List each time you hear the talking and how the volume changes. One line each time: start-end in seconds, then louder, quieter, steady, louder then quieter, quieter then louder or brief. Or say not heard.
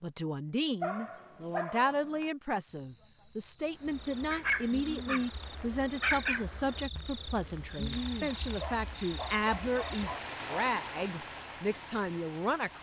0.0-12.7 steady.